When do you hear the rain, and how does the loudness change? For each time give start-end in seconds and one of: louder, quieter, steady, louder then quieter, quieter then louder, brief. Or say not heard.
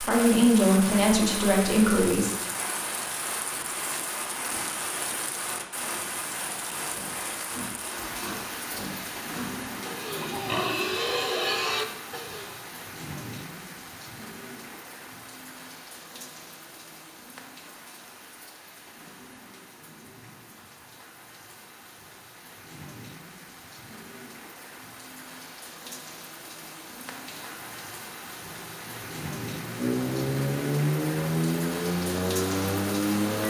0.0-33.4 quieter then louder.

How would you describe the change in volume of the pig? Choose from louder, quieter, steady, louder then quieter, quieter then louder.
louder.